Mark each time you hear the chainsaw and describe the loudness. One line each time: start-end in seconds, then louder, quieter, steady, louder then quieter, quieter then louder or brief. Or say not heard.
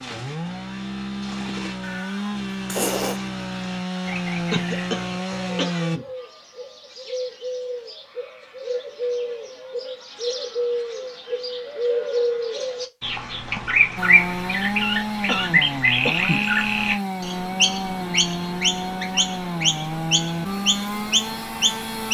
0.0-6.0 steady
13.9-22.0 steady.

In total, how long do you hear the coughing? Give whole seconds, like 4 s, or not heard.
3 s.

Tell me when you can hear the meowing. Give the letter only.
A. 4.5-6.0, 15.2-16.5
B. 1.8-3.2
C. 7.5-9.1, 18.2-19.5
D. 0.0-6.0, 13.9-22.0
B.